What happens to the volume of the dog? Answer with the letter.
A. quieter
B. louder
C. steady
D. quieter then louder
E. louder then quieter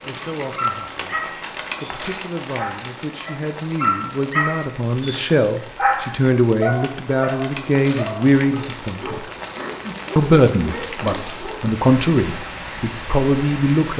E.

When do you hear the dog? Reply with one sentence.
The dog can be heard from 0.6 to 11.7 s.